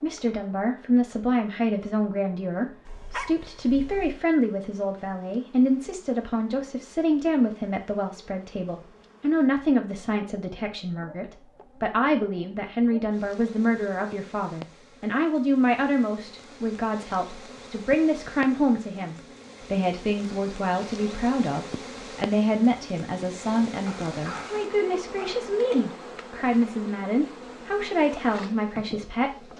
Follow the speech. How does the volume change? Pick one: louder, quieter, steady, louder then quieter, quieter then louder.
steady.